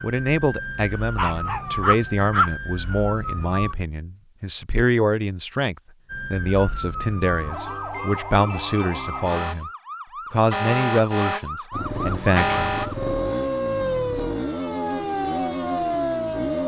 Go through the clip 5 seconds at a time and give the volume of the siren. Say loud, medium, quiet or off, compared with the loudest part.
medium, medium, loud, loud.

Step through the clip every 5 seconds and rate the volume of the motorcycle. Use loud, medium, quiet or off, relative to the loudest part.
off, off, loud, loud.